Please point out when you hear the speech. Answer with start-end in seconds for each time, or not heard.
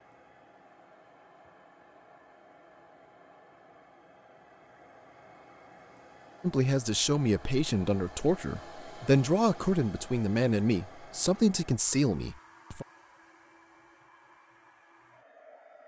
6.4-12.8.